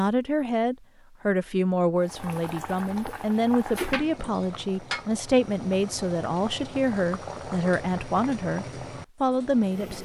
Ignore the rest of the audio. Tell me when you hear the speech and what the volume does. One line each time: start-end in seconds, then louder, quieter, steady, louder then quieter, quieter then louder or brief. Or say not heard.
0.0-10.0 steady.